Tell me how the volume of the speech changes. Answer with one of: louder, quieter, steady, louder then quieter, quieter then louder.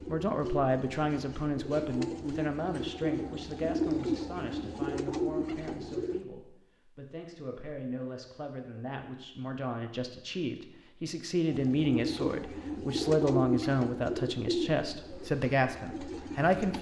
quieter then louder.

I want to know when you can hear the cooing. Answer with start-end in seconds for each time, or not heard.
0.0-6.2, 11.4-16.7.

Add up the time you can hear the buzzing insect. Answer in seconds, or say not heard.
not heard.